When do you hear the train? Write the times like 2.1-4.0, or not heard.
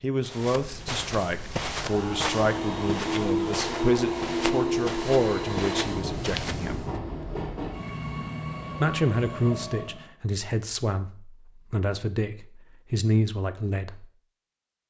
1.8-10.2.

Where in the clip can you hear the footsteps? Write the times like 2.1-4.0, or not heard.
0.2-7.0.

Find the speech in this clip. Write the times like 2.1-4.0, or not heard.
0.0-6.8, 8.8-14.1.